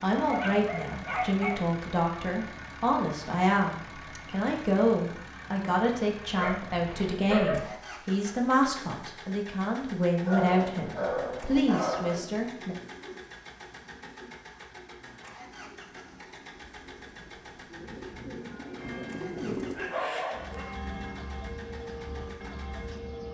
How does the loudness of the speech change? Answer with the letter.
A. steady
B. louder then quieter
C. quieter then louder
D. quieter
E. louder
A.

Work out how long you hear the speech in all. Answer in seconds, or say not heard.
13 s.